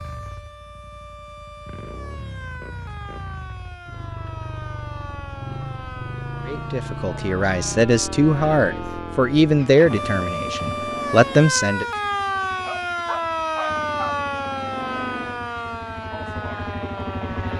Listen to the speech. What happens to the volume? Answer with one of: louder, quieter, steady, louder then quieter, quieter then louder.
louder.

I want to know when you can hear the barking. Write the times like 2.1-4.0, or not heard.
12.3-14.1.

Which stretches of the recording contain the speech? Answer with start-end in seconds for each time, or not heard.
6.5-11.8.